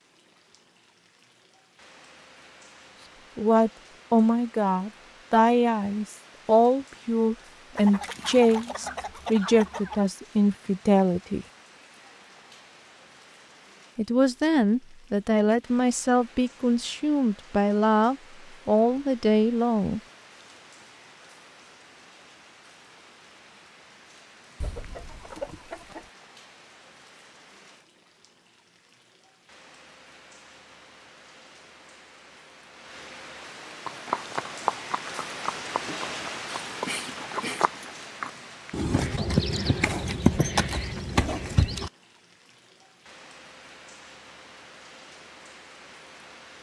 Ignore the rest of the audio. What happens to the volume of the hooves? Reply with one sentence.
The volume of the hooves goes down, then up.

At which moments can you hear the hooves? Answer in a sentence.
You can hear the hooves from 33.9 to 41.9 s.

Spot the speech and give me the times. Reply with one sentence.
The speech can be heard from 3.4 to 11.4 s and from 13.9 to 20.0 s.